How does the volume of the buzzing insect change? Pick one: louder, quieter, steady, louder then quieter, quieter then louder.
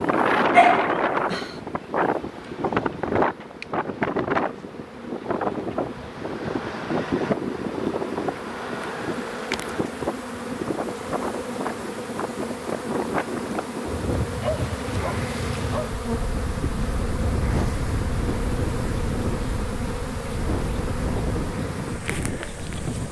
louder.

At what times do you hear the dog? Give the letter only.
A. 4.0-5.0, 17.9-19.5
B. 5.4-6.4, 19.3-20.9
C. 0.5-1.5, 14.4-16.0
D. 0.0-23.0
C.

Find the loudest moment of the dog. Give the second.
1 s.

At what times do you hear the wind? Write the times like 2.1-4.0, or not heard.
0.0-23.0.